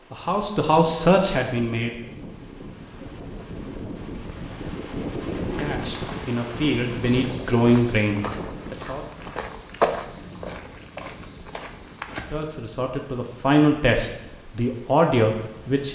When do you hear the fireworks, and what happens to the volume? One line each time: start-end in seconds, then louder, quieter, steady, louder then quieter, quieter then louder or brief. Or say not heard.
not heard.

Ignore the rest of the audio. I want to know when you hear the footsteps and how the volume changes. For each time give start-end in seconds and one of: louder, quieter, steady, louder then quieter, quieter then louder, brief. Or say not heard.
5.3-12.6 louder then quieter.